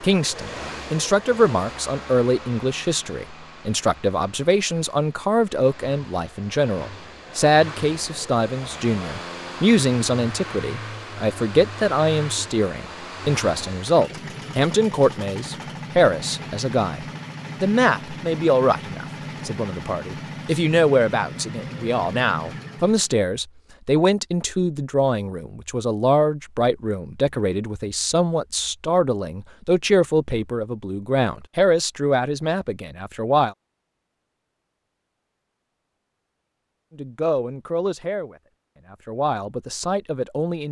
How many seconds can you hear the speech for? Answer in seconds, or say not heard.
37 s.